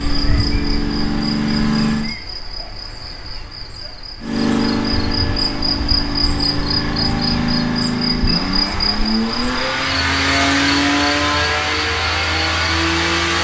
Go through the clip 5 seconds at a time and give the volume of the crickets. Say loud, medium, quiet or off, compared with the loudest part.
medium, loud, medium.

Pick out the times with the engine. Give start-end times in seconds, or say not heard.
0.0-2.1, 4.2-13.3.